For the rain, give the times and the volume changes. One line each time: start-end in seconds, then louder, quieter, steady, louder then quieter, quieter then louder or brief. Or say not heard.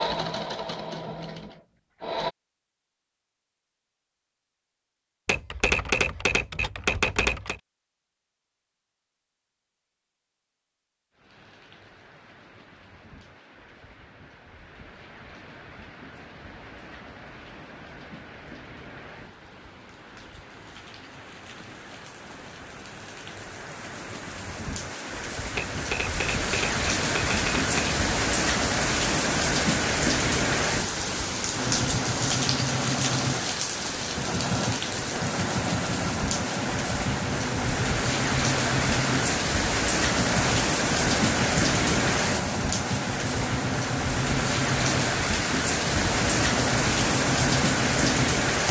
11.2-48.6 louder.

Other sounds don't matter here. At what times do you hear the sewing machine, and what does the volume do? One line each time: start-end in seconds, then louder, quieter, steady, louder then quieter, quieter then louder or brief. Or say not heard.
0.0-2.4 brief
31.6-48.2 steady.